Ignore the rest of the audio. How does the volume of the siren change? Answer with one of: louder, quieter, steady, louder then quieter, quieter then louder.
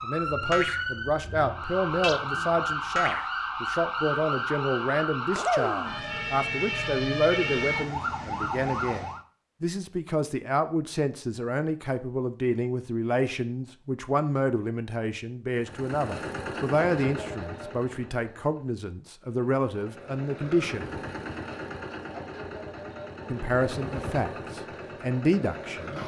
steady.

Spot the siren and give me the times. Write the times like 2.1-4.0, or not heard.
0.0-9.2.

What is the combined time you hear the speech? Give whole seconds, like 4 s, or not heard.
24 s.